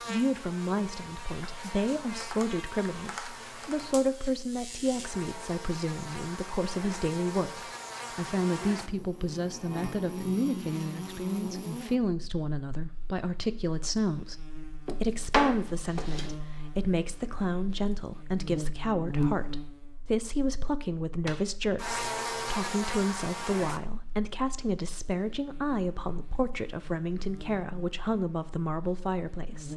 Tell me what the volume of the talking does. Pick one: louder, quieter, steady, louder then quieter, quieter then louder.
steady.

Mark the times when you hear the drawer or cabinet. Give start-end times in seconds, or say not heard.
14.8-16.4.